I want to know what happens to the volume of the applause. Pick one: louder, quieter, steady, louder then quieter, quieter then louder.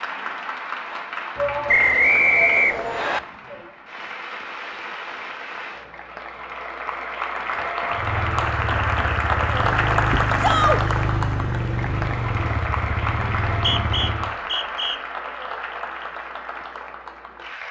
louder then quieter.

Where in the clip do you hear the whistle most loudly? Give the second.
2 s.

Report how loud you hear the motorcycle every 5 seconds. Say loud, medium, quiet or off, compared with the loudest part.
off, loud, loud, off.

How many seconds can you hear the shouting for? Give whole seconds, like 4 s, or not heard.
3 s.